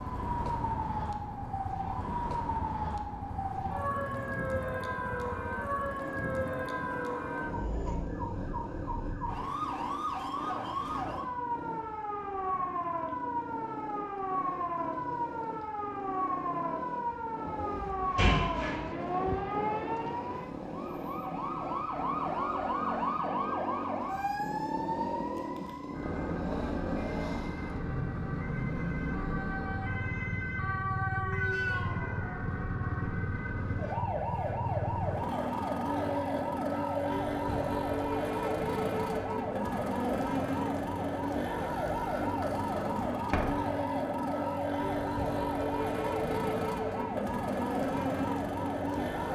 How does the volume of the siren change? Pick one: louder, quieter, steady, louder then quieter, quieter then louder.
steady.